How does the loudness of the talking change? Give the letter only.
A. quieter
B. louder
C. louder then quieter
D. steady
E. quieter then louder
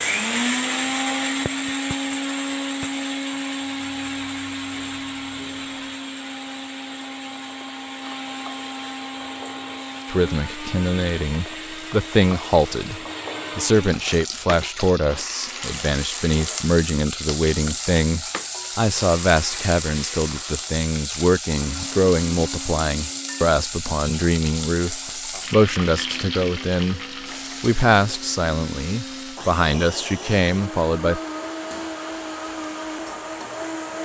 D.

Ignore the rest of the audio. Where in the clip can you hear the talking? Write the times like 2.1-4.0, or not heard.
10.1-27.0, 27.6-31.2.